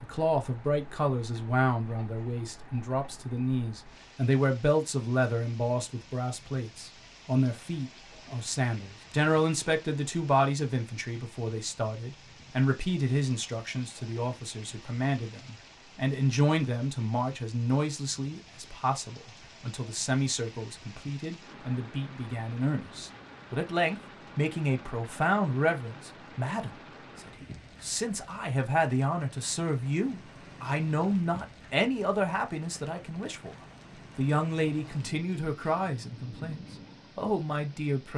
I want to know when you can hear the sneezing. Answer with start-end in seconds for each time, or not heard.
not heard.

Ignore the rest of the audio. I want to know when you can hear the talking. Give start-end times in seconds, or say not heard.
0.0-33.5, 34.1-38.1.